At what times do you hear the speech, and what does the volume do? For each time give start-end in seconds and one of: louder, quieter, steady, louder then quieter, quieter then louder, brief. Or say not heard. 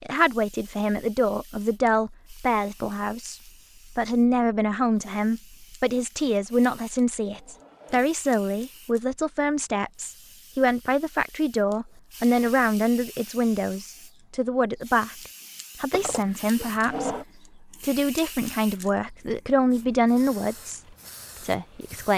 0.0-20.8 steady
21.4-22.1 brief.